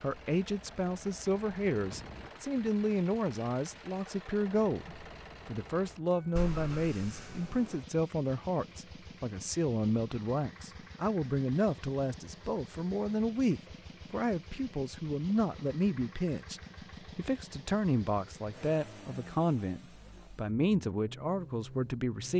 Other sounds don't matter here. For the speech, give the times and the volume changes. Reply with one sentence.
You can hear the speech from 0.0 to 22.3 s, at a steady volume.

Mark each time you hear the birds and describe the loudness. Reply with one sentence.
You can't hear the birds here.